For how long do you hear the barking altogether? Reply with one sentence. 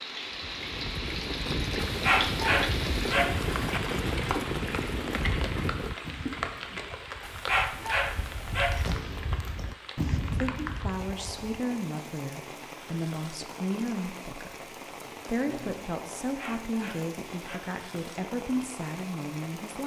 The barking can be heard for 5 seconds in total.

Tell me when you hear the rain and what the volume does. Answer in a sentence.
The rain can be heard from 0.0 to 19.8 s, getting quieter.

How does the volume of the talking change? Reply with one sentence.
The volume of the talking stays about the same.